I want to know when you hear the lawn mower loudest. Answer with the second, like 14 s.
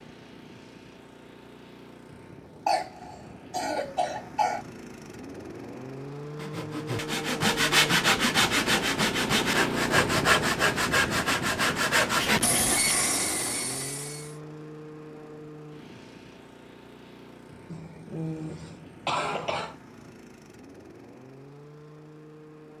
10 s.